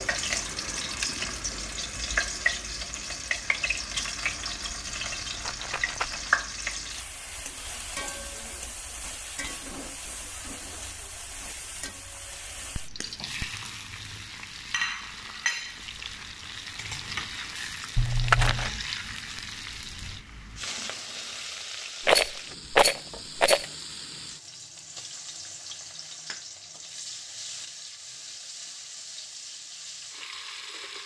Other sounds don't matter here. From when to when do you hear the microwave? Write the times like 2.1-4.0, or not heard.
not heard.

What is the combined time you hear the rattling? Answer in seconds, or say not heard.
4 s.